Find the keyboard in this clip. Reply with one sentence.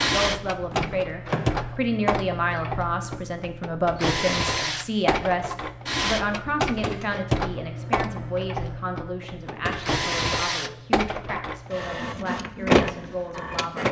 You can't hear the keyboard here.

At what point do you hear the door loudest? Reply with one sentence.
The loudest moment of the door is at 1 second.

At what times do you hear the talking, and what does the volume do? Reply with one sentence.
The talking can be heard from 0.0 to 13.8 s, getting quieter.